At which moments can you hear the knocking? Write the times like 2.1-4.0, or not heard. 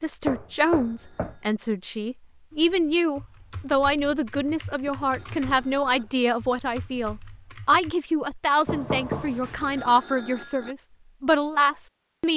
0.2-1.4, 4.5-6.2, 8.7-9.9.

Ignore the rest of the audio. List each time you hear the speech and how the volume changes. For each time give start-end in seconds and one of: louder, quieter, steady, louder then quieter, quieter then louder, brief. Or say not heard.
0.0-12.3 steady.